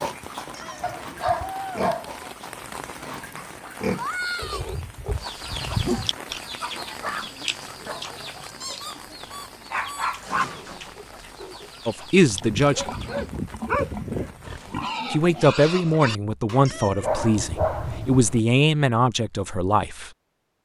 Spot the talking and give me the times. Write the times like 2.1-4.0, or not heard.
11.8-12.8, 15.1-20.1.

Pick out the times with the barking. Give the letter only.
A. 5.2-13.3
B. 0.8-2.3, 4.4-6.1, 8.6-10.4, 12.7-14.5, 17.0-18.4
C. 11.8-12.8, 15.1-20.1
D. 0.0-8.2
B.